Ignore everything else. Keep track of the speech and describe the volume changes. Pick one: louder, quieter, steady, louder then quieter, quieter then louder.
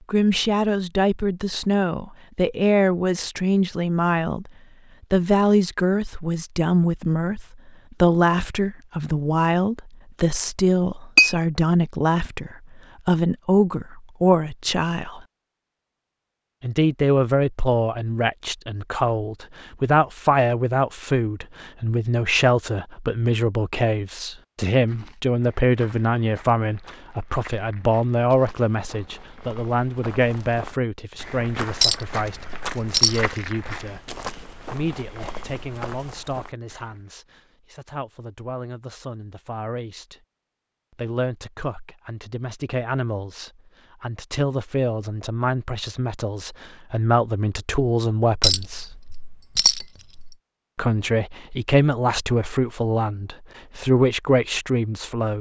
quieter then louder.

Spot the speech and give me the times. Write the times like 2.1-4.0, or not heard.
0.1-4.5, 5.1-15.2, 16.6-40.2, 41.0-49.0, 50.8-55.3.